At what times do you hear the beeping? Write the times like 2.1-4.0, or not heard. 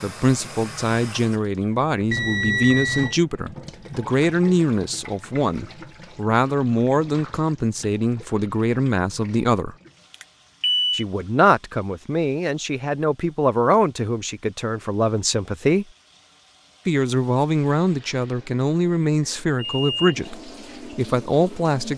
2.1-3.1, 10.1-11.1, 19.6-20.2.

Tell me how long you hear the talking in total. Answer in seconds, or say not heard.
20 s.